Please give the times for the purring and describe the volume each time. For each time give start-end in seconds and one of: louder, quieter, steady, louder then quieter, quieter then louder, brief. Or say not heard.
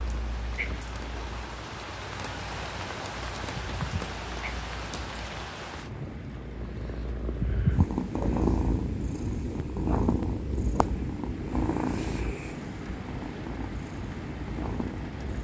0.0-15.3 louder then quieter.